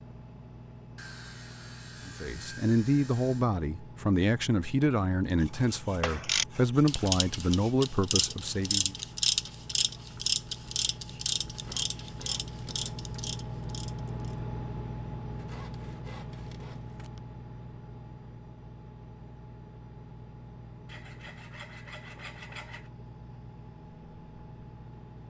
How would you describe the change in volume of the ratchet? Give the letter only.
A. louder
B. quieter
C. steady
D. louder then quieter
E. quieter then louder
B.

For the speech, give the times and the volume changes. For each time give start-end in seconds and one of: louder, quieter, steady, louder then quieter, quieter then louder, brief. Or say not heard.
2.0-8.9 steady.